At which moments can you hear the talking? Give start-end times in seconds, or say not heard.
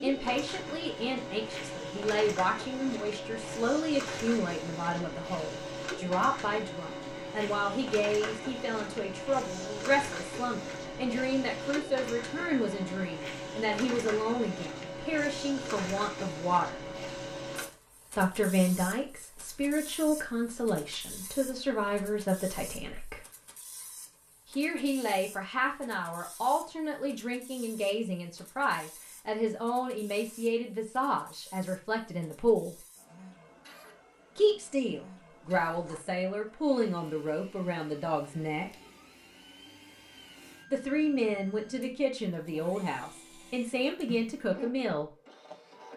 0.0-16.8, 18.1-23.2, 24.5-32.8, 34.4-38.7, 40.7-45.1.